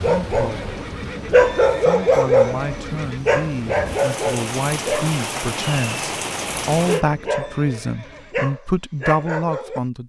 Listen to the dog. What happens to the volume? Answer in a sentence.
The volume of the dog goes down.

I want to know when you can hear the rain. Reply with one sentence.
The rain can be heard from 0.0 to 7.0 s.